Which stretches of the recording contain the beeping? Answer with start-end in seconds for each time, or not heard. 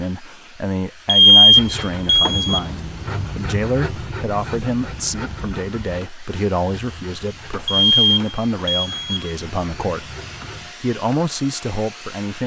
1.1-2.6, 7.7-9.3.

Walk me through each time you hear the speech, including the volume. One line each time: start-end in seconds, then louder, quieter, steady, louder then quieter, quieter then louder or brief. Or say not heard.
0.0-10.2 steady
10.8-12.4 brief.